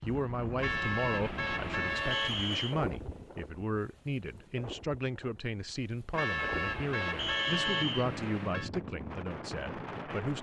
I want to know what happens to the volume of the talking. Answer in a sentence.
The volume of the talking stays about the same.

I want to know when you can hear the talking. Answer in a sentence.
You can hear the talking from 0.0 to 10.3 s.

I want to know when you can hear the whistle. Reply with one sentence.
You can hear the whistle from 2.1 to 2.8 s and from 7.2 to 8.1 s.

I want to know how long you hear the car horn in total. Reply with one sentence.
You can hear the car horn for 5 seconds altogether.